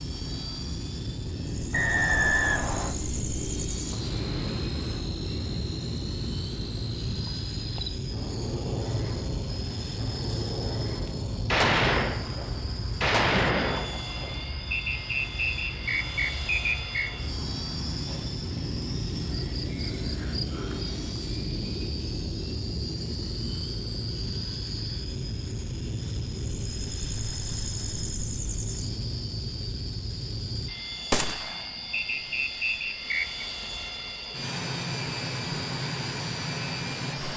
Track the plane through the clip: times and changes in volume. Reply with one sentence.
The plane can be heard from 0.0 to 37.3 s, at a steady volume.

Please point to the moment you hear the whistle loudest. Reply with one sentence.
The volume of the whistle peaks at 2 seconds.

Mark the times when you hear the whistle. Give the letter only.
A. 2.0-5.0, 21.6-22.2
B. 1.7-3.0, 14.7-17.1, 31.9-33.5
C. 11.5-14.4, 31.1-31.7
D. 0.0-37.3
B.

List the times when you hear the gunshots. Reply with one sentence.
The gunshots can be heard from 11.5 to 14.4 s and from 31.1 to 31.7 s.